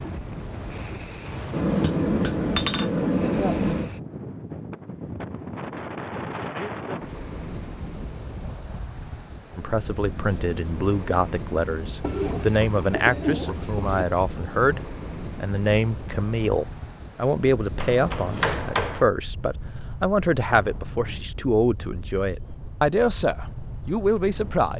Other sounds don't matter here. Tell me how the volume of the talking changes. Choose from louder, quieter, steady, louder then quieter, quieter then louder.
steady.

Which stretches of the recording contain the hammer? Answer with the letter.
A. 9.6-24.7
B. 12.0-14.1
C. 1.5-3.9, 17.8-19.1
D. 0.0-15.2
C.